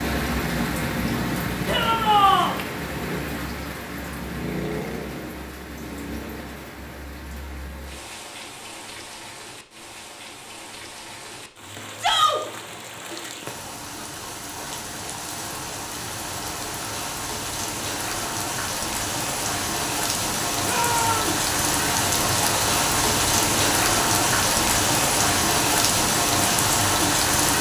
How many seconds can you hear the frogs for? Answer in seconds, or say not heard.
not heard.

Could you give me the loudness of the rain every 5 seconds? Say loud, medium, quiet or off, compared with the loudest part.
medium, quiet, quiet, medium, loud, loud.